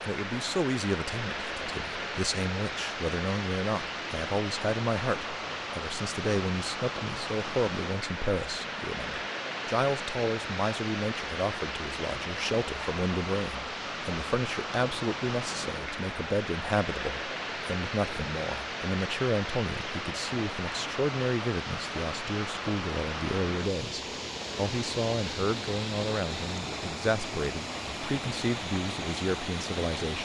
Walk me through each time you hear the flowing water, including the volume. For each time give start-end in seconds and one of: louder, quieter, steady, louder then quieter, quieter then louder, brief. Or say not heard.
0.0-30.2 steady.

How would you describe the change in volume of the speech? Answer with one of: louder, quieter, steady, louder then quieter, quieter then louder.
steady.